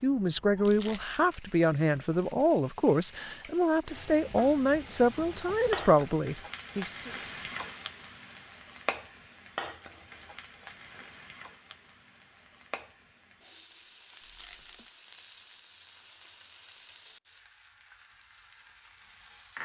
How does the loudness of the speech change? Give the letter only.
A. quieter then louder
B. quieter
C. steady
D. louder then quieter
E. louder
C.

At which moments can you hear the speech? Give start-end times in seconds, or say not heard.
0.0-7.1.